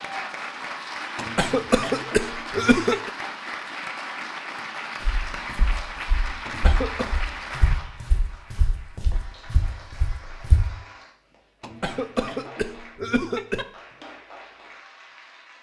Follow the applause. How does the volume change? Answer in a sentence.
The volume of the applause goes down.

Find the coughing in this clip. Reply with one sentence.
The coughing can be heard from 1.1 to 3.1 s, from 6.5 to 7.1 s and from 11.6 to 13.7 s.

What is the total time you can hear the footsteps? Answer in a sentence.
You can hear the footsteps for 6 seconds altogether.